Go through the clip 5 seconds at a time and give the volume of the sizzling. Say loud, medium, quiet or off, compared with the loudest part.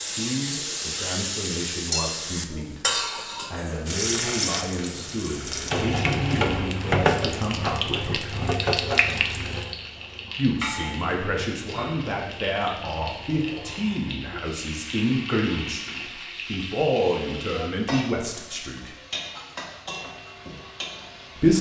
loud, loud, medium, medium, quiet.